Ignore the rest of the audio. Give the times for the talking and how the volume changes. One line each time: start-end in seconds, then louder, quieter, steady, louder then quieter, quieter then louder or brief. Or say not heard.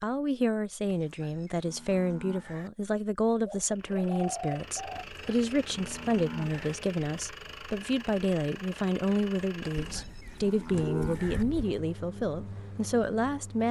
0.0-13.6 steady.